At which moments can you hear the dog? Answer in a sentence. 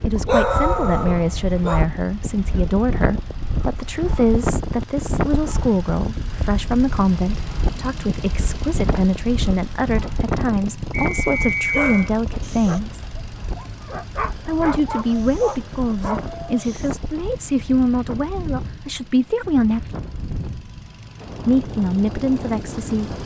You can hear the dog from 0.0 to 1.9 s and from 11.7 to 16.9 s.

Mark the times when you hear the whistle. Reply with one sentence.
You can hear the whistle from 10.9 to 11.9 s.